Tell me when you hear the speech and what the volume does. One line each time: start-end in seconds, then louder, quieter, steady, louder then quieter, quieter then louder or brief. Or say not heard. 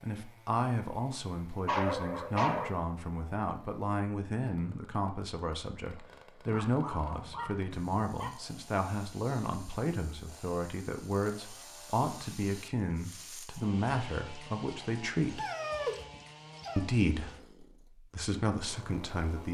0.0-15.4 steady
16.8-19.4 brief.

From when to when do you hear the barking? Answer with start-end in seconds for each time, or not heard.
1.6-2.8, 6.5-8.3, 15.3-16.9.